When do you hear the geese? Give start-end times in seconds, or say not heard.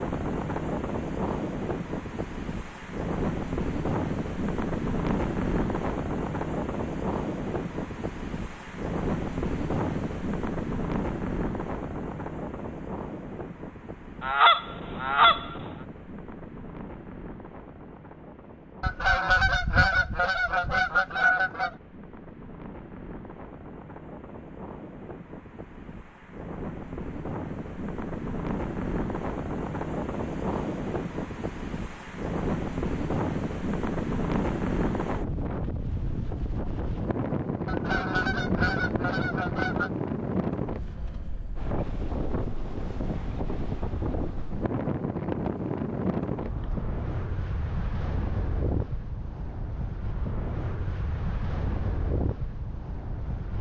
14.2-15.6, 18.8-21.7, 37.6-39.9.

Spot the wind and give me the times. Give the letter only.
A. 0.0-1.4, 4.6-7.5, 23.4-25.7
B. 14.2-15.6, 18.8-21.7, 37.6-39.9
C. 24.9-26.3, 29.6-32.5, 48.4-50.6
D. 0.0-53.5
D.